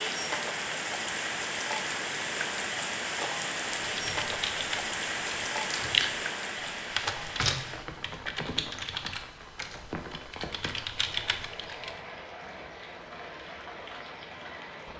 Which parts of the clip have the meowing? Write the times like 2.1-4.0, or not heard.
not heard.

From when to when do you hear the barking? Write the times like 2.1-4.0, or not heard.
not heard.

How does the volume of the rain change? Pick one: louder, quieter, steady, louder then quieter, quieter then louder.
quieter.